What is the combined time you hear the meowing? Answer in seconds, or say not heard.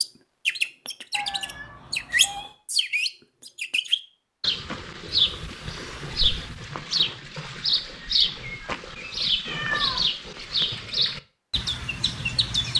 4 s.